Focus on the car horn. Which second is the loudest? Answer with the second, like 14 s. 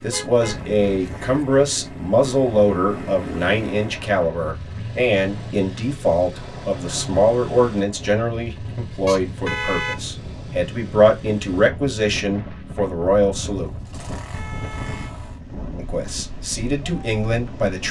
10 s.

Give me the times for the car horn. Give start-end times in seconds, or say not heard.
0.1-1.4, 9.1-10.0, 14.3-15.2.